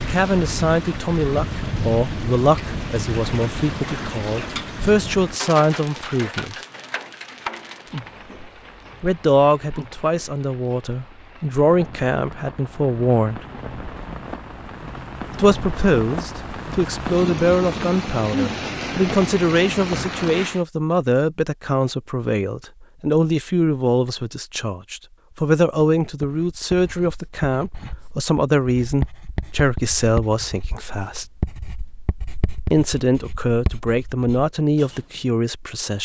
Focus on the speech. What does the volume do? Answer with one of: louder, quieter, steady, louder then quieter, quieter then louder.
steady.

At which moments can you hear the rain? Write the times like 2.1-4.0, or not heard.
0.0-20.6.